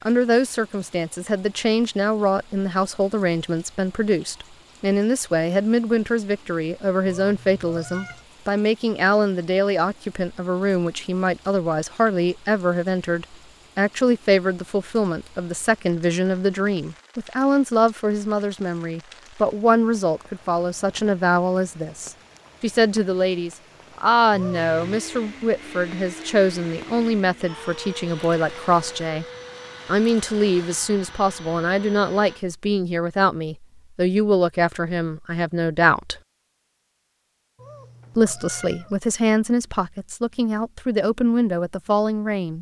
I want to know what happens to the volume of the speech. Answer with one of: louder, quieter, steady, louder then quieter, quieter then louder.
steady.